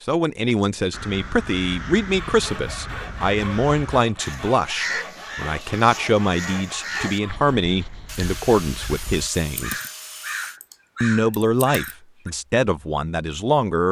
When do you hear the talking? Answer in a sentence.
The talking can be heard from 0.1 to 9.8 s and from 11.0 to 13.8 s.